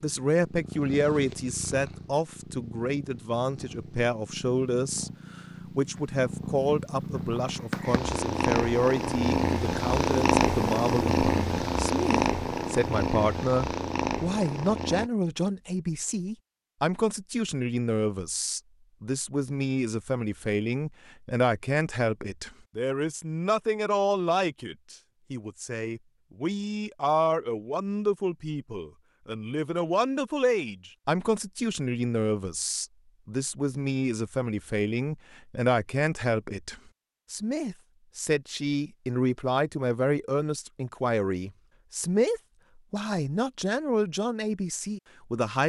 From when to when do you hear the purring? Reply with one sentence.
The purring can be heard from 0.0 to 15.1 s.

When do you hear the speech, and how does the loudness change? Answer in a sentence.
You can hear the speech from 0.0 to 45.6 s, at a steady volume.